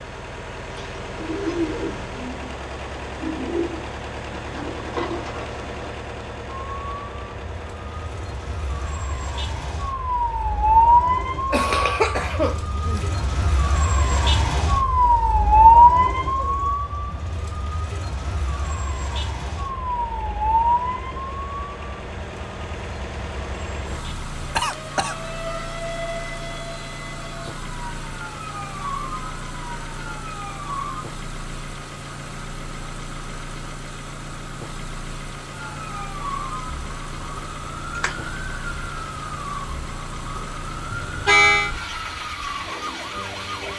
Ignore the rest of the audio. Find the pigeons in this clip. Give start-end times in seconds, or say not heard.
0.7-5.9.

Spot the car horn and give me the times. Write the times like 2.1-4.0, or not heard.
40.9-41.7.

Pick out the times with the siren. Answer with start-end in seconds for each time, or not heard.
6.7-31.1, 35.5-43.7.